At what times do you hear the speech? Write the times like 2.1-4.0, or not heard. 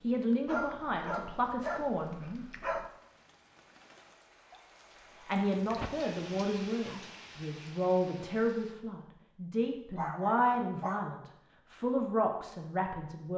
0.0-2.1, 5.2-13.3.